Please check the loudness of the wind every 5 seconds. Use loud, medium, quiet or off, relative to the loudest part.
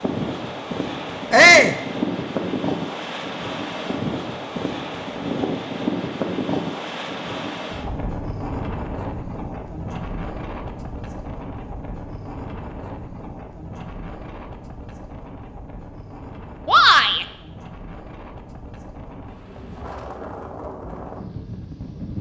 loud, loud, medium, quiet, medium.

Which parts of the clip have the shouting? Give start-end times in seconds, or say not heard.
1.3-1.8, 16.6-17.2.